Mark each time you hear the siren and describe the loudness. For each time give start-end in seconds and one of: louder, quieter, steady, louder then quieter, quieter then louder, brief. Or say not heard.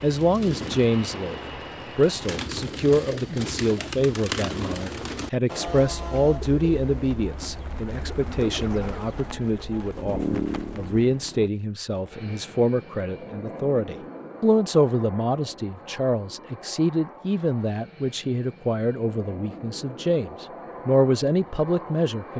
not heard.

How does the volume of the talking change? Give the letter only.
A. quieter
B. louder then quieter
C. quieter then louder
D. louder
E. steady
E.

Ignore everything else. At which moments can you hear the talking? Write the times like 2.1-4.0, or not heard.
0.0-22.3.